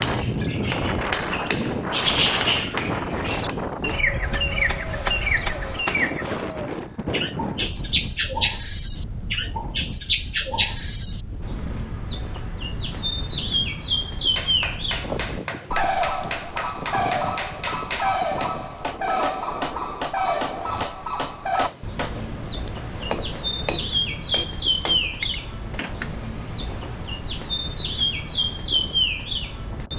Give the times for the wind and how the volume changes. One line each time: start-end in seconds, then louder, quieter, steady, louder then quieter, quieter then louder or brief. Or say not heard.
0.0-29.9 quieter.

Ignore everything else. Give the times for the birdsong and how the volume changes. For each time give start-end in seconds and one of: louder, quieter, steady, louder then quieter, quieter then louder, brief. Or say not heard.
0.0-29.9 steady.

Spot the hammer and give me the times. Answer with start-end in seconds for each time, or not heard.
0.0-6.2, 14.3-26.2.